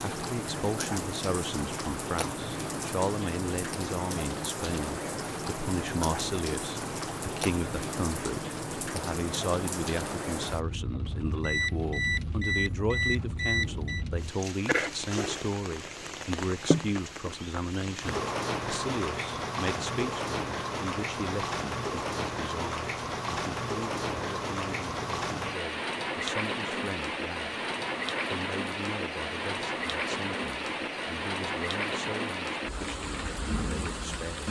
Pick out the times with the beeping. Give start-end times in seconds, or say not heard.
11.4-14.1.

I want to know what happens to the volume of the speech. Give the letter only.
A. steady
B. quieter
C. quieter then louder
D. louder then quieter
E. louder
B.